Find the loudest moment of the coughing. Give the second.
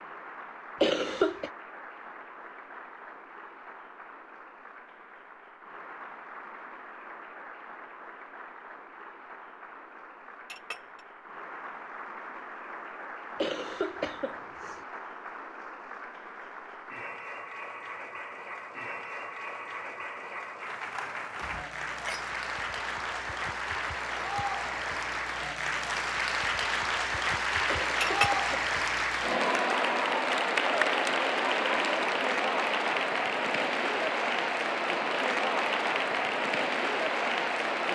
1 s.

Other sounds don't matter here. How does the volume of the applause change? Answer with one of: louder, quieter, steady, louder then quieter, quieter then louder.
louder.